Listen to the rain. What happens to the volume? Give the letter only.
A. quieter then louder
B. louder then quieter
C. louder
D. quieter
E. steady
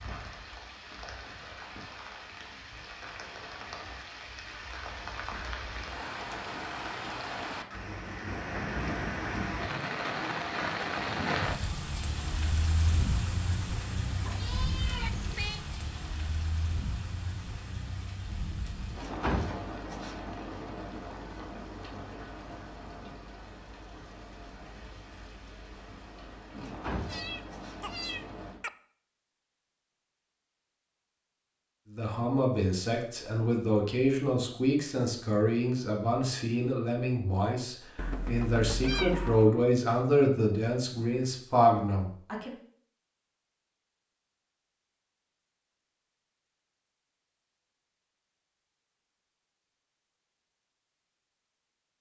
B.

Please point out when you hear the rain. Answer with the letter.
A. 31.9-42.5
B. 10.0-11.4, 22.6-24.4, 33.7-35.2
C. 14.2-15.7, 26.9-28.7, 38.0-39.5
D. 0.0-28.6
D.